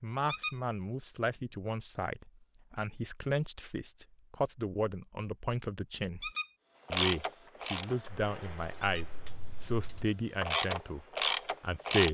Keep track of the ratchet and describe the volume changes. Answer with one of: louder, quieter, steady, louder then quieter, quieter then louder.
quieter then louder.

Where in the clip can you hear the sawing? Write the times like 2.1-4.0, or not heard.
not heard.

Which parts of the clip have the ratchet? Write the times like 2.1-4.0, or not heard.
6.9-12.0.